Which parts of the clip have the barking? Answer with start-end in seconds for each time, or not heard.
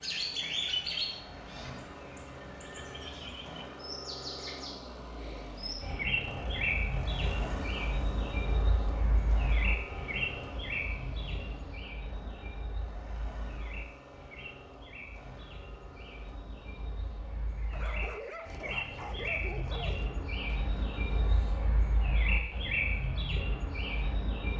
17.7-20.3.